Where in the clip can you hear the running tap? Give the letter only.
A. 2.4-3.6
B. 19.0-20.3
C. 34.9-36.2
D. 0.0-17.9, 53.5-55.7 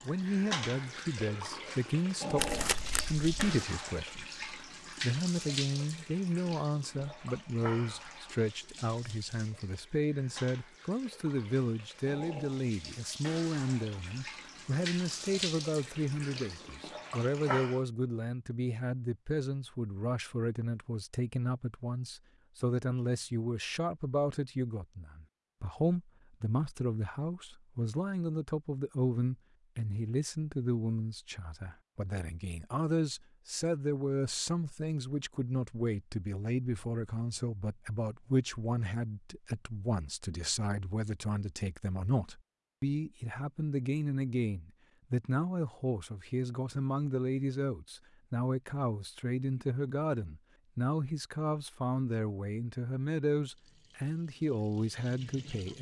D.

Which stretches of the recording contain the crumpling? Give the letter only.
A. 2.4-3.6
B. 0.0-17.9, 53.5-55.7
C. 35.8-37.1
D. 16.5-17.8
A.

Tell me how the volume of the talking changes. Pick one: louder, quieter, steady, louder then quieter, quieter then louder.
steady.